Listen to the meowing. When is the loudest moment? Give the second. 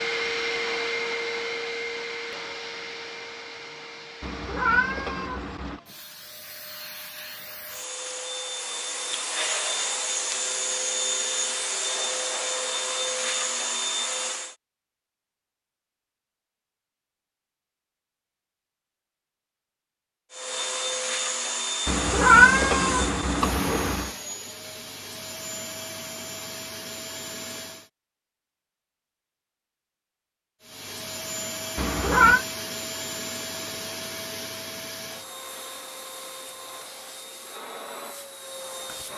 22 s.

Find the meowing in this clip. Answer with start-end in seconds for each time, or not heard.
4.2-5.8, 21.9-24.1, 31.8-32.5.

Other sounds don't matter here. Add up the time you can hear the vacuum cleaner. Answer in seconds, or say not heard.
31 s.